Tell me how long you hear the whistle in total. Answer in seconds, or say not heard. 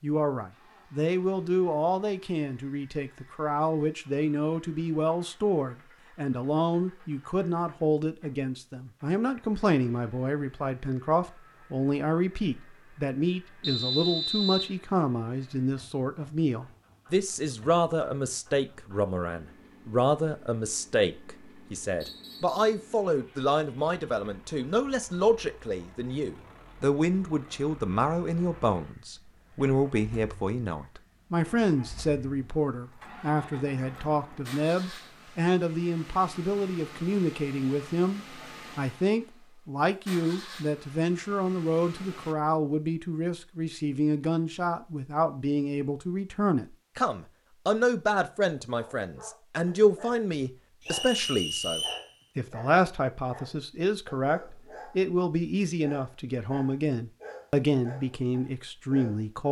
3 s.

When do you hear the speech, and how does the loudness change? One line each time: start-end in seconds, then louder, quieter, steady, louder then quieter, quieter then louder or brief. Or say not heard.
0.0-59.4 steady.